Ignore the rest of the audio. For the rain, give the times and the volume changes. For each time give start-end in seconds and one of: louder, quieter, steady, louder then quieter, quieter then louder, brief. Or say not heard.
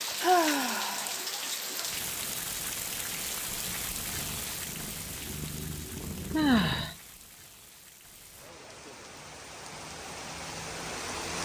0.0-11.4 quieter then louder.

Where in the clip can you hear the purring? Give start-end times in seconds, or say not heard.
4.0-7.0.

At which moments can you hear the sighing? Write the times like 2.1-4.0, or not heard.
0.2-1.1, 6.3-7.0.